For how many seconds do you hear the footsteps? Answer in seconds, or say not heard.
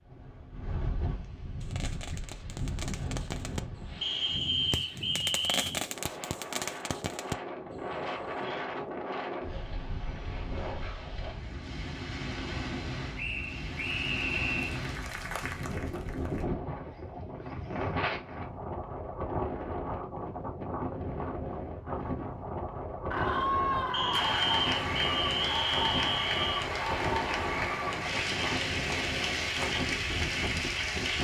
not heard.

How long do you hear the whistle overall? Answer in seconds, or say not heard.
6 s.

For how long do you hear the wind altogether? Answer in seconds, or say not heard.
31 s.